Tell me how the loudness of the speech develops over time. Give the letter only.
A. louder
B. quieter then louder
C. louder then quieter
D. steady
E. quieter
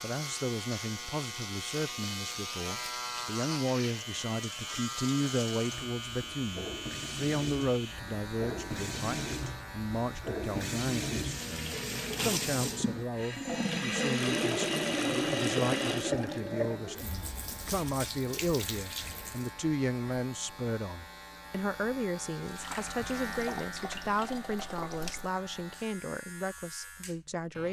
D.